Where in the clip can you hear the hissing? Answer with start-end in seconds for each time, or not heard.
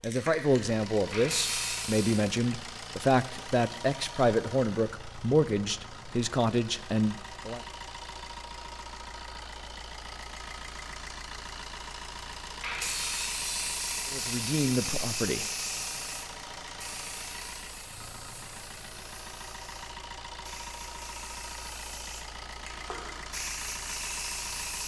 0.0-2.3, 12.6-24.8.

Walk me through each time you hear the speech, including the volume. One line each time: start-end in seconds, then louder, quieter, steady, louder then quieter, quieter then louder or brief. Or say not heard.
0.0-7.7 steady
14.1-15.4 brief.